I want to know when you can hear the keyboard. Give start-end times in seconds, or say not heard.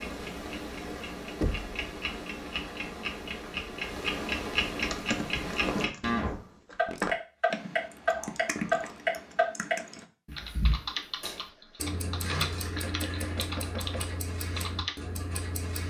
4.8-14.9.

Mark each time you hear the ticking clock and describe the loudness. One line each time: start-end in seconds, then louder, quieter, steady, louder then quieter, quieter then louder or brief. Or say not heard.
0.0-15.8 louder then quieter.